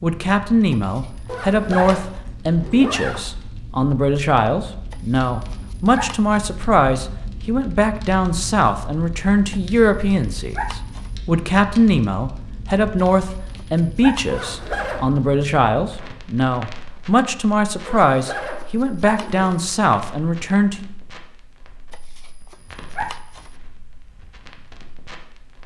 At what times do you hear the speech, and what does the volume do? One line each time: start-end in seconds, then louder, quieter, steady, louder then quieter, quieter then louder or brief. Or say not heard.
0.0-20.9 steady.